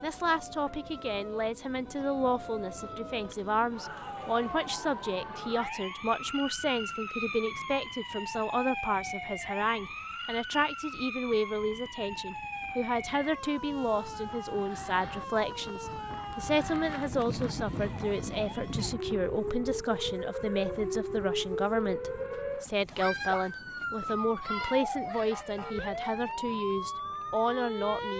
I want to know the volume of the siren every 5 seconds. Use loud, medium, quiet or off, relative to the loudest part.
medium, loud, medium, loud, loud, loud.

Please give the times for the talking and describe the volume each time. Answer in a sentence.
The talking can be heard from 0.0 to 28.1 s, at a steady volume.